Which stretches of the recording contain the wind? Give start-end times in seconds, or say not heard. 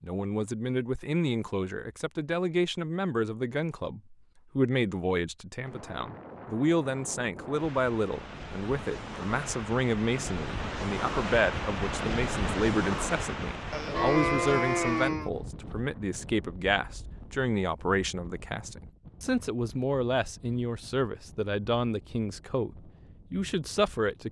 5.7-24.2.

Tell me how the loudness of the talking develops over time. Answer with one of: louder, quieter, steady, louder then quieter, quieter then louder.
steady.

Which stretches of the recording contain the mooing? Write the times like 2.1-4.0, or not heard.
13.7-15.3.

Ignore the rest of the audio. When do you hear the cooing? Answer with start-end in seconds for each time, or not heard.
not heard.